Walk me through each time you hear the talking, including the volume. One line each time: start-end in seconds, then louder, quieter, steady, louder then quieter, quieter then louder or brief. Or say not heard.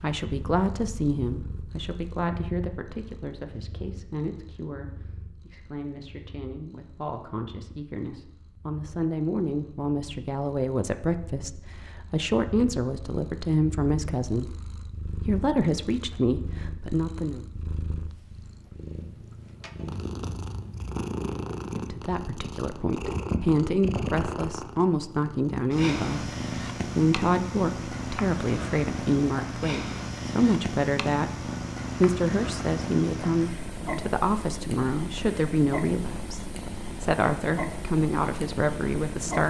0.0-17.4 quieter then louder
21.8-39.4 steady.